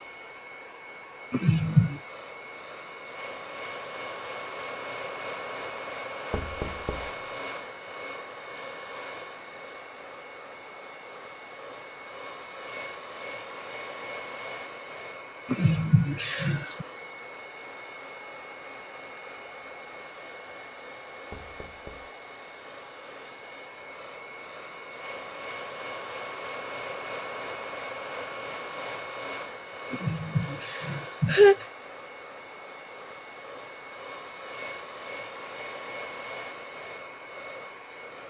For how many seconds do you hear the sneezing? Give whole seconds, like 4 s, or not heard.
4 s.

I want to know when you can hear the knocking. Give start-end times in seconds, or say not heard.
6.3-7.2, 21.3-22.1.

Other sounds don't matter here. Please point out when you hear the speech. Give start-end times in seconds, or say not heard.
not heard.